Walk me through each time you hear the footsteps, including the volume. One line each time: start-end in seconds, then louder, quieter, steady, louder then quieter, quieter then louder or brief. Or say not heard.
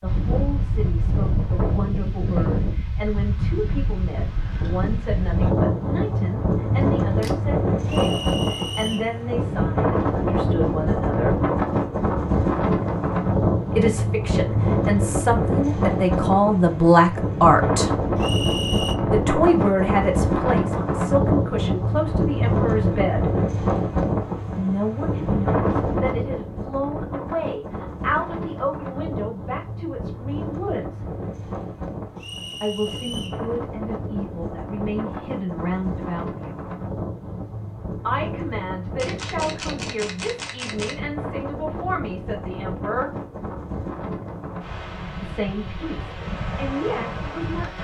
not heard.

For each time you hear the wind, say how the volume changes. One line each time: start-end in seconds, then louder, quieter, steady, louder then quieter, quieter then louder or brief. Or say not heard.
0.0-47.7 quieter.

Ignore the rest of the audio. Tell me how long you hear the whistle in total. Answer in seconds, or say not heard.
3 s.